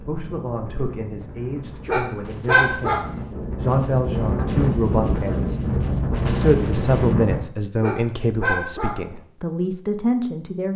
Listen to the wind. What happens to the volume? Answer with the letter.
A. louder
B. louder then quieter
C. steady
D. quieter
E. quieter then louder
A.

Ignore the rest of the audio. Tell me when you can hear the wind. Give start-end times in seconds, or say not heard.
0.0-7.4.